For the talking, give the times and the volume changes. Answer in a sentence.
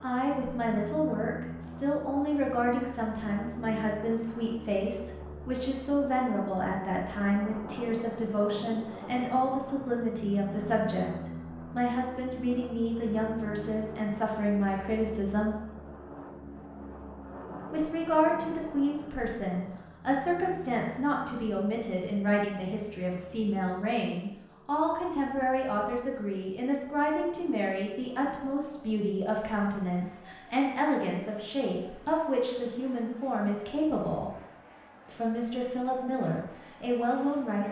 The talking can be heard from 0.0 to 15.6 s, at a steady volume; from 17.7 to 34.3 s, at a steady volume; and briefly from 35.0 to 37.6 s.